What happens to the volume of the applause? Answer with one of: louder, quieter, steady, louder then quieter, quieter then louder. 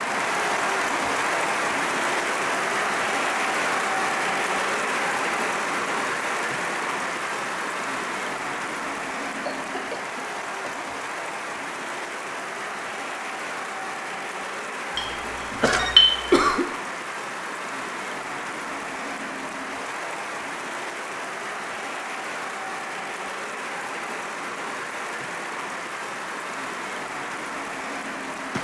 quieter.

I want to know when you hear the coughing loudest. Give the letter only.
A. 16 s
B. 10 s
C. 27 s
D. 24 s
A.